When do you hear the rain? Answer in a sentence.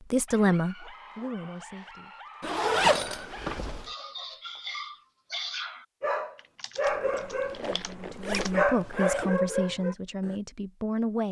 You can't hear the rain here.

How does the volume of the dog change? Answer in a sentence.
The volume of the dog goes up.